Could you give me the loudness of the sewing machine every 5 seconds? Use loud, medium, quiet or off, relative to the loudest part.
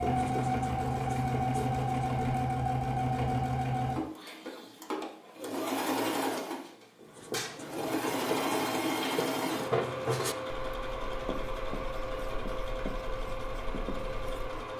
loud, loud, medium.